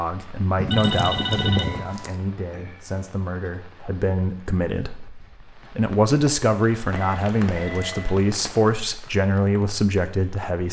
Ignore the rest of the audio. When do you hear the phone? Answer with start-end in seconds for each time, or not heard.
0.7-2.2, 7.0-8.2.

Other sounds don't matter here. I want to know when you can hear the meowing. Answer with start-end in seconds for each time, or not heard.
0.6-1.9.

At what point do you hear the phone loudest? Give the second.
1 s.